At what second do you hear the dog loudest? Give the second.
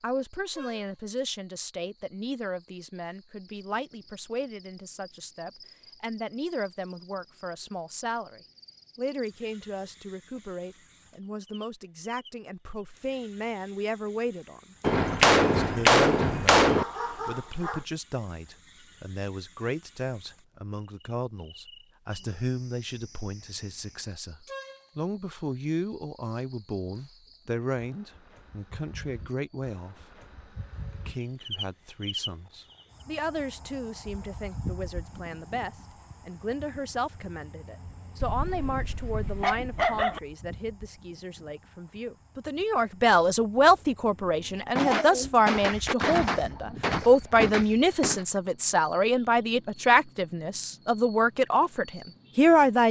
40 s.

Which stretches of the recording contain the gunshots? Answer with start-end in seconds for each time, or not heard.
14.8-16.9, 44.8-48.2.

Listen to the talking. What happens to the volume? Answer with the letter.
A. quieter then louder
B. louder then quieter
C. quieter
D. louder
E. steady
D.